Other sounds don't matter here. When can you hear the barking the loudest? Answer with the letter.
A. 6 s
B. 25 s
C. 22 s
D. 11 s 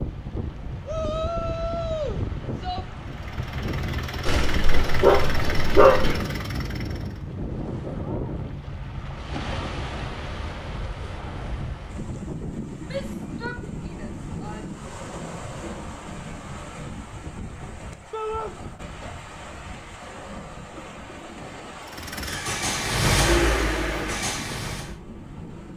A.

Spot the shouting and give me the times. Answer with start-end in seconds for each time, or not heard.
0.8-2.9, 12.8-14.8, 18.1-18.6.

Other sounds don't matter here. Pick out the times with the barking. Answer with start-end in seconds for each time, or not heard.
4.2-6.2.